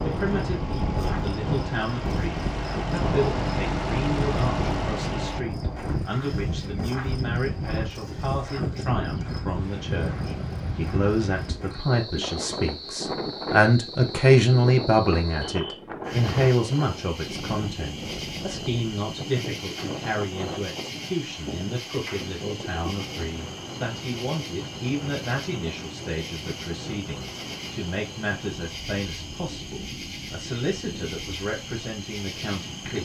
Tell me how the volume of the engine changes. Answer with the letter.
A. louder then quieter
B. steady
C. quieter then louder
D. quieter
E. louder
E.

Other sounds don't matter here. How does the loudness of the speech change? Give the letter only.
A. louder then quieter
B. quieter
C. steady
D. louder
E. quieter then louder
A.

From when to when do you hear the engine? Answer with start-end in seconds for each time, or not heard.
0.0-5.5.